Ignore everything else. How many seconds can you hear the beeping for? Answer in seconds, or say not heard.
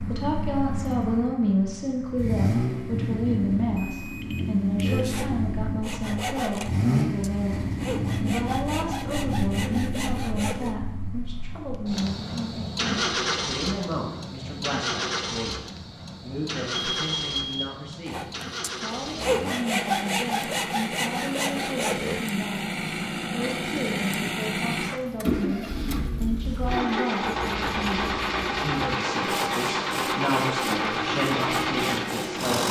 2 s.